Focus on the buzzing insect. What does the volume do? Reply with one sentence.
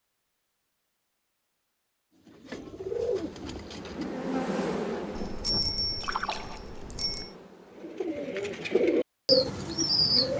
The loudness of the buzzing insect goes up, then down.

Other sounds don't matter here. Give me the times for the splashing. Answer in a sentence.
You can hear the splashing from 6.0 to 7.1 s.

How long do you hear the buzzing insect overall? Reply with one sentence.
The buzzing insect can be heard for 5 seconds in total.